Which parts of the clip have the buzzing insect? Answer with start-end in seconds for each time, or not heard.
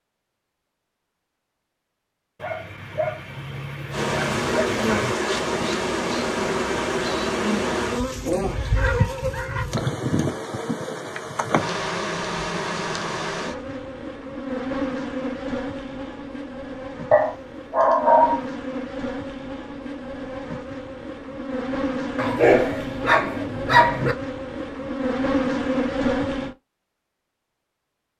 3.9-26.6.